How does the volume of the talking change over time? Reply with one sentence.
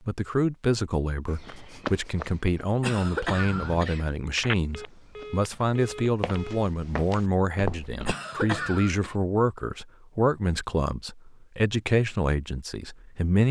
The loudness of the talking stays about the same.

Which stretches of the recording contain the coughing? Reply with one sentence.
The coughing can be heard from 2.8 to 4.0 s and from 8.1 to 9.2 s.